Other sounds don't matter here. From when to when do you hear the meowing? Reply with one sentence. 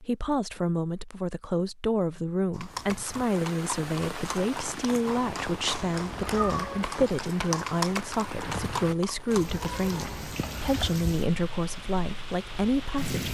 The meowing can be heard from 6.1 to 6.8 s.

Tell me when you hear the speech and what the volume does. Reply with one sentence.
You can hear the speech from 0.0 to 13.3 s, at a steady volume.